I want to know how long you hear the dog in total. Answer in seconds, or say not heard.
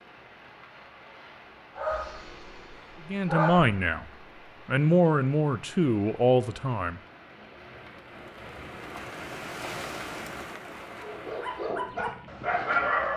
4 s.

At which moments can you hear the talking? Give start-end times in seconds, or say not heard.
3.0-7.0.